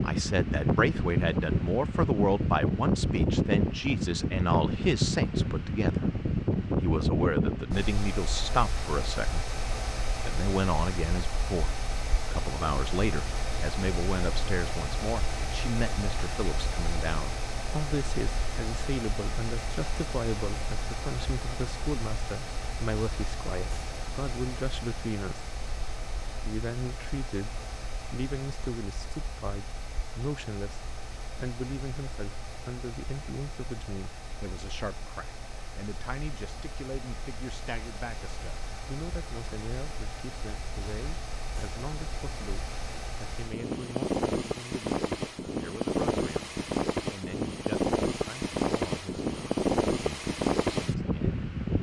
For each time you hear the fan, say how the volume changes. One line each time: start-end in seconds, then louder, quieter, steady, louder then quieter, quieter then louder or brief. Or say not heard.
0.0-51.7 quieter then louder.